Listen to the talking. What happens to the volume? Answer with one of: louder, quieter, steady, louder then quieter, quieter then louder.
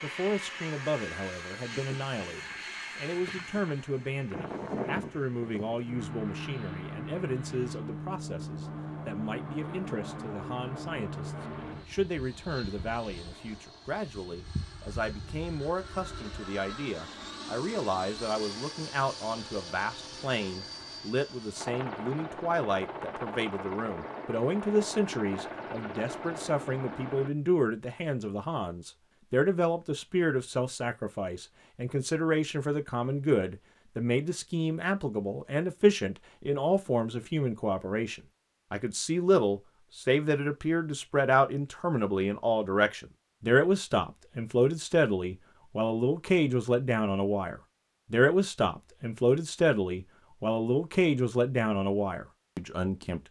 louder.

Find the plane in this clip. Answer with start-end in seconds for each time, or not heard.
0.0-27.3.